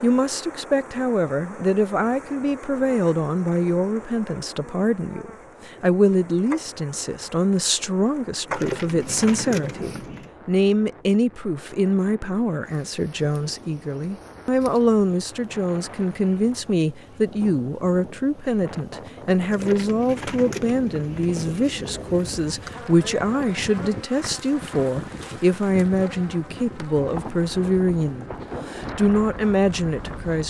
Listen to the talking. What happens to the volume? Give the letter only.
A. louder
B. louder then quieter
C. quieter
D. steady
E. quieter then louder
D.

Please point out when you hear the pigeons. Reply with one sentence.
You can hear the pigeons from 8.4 to 10.3 s and from 19.4 to 22.2 s.